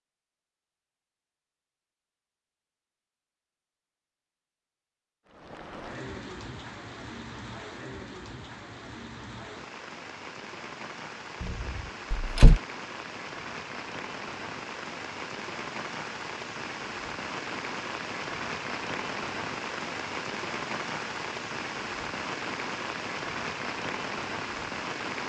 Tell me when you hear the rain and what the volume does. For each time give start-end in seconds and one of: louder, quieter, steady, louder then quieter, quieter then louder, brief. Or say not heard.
5.2-25.2 louder.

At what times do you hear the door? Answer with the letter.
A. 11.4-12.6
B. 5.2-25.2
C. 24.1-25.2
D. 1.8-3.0
A.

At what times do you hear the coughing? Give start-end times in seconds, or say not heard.
not heard.